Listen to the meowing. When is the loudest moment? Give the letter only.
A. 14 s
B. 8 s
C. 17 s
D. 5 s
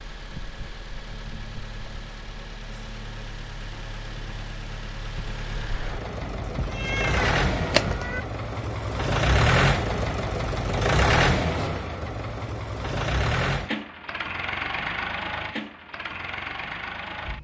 B.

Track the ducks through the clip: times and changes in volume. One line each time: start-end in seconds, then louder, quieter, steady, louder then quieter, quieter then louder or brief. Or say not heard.
not heard.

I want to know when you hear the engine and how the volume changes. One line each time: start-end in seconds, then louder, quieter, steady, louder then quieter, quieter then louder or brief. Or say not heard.
0.0-17.3 louder then quieter.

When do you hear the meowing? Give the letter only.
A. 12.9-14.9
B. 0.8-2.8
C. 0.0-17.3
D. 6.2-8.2
D.